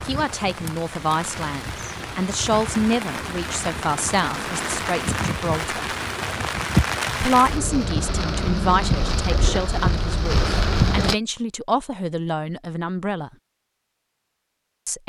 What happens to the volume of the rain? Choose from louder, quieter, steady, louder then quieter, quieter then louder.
louder.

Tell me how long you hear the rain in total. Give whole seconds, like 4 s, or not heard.
11 s.